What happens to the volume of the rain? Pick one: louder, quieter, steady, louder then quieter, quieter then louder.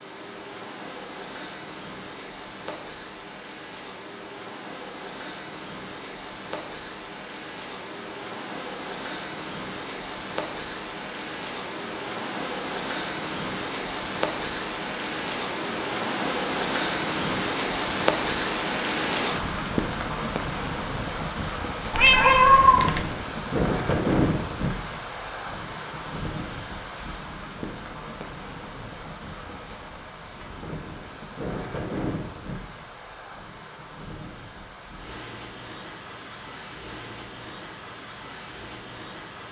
louder then quieter.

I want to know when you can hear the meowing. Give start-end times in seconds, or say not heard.
21.9-23.1.